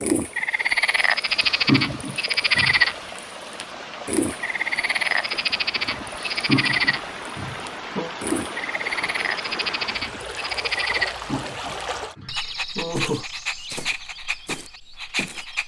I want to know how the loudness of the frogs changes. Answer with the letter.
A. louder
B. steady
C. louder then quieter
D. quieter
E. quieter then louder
D.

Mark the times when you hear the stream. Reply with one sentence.
The stream can be heard from 0.0 to 12.2 s.